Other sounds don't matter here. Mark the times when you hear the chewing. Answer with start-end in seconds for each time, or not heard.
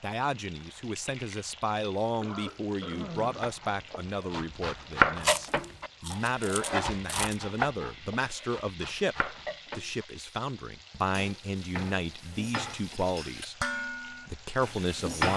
5.2-7.3.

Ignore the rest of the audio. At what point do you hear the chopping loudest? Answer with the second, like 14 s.
5 s.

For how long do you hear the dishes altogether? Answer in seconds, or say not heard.
4 s.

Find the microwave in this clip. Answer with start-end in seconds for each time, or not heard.
not heard.